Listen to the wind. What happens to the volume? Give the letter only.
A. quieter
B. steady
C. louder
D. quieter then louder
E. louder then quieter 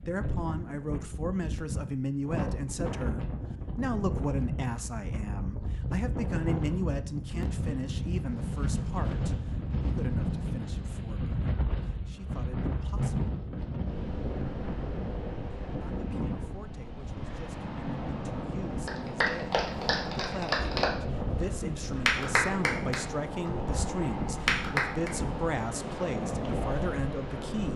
B.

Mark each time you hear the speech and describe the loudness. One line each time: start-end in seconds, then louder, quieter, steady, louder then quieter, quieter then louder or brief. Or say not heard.
0.0-13.3 quieter
15.7-27.7 louder.